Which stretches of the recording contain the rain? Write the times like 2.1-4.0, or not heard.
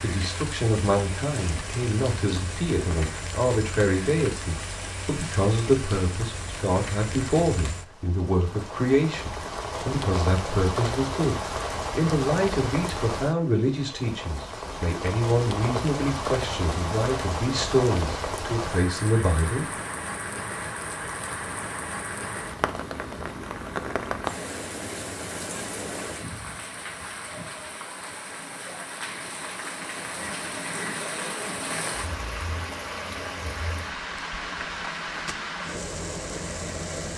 0.0-37.1.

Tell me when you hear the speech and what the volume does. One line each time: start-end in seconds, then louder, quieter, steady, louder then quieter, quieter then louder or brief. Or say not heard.
0.0-19.7 steady.